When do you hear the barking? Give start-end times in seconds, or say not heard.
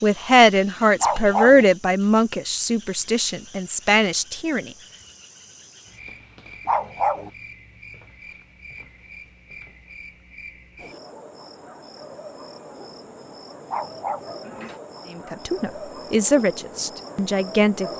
1.0-1.6, 6.7-7.3, 13.7-14.3.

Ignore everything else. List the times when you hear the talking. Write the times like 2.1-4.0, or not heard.
0.0-4.7, 15.2-17.9.